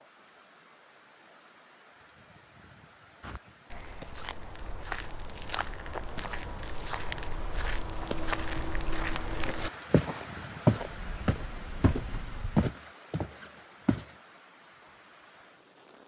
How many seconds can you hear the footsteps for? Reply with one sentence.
You can hear the footsteps for 11 seconds altogether.